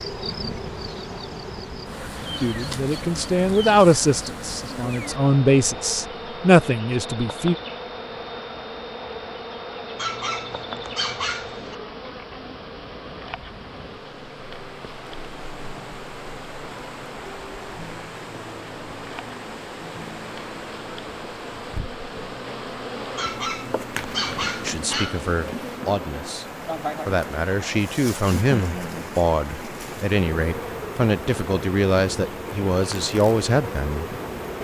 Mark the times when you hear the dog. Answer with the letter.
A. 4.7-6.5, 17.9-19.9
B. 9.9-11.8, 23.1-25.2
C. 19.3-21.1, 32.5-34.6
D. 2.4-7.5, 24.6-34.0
B.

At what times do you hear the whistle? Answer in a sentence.
The whistle can't be heard in this clip.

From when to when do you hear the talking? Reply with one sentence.
You can hear the talking from 2.4 to 7.5 s and from 24.6 to 34.0 s.